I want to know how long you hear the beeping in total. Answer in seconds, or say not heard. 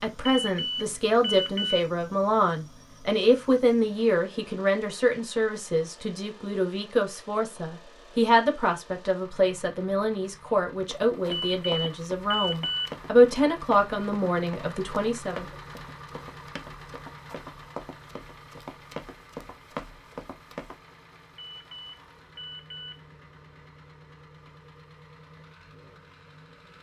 5 s.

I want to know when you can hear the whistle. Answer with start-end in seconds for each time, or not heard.
not heard.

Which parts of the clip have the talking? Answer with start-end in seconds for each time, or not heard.
0.0-15.4.